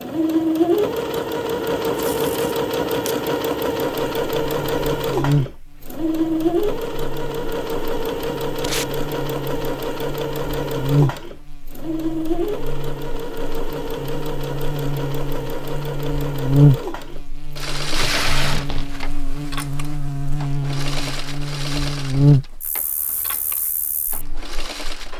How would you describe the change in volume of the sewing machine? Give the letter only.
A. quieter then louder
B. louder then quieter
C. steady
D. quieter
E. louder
D.